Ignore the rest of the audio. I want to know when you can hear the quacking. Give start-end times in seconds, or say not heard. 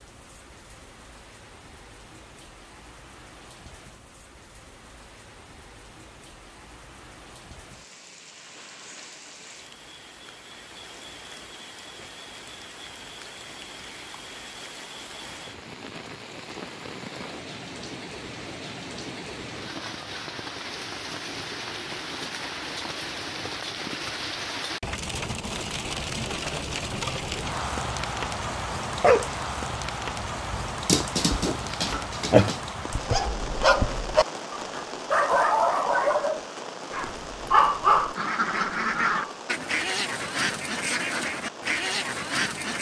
38.1-42.7.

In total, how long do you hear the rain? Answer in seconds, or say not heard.
43 s.